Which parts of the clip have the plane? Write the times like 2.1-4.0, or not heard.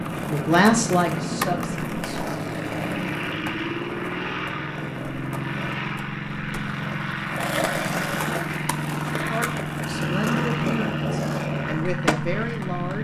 0.0-12.9.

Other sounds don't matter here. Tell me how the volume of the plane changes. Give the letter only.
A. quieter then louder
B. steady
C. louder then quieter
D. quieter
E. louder
B.